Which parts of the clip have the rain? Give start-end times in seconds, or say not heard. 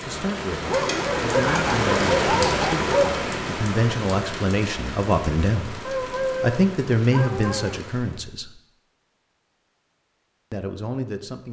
0.0-8.3.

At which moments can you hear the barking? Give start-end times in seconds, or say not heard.
0.6-3.2, 5.8-7.8.